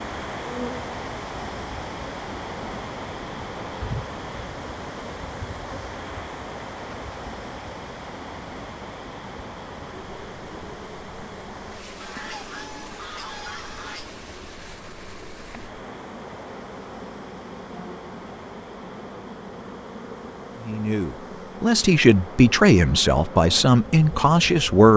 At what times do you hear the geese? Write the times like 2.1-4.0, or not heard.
12.0-14.2.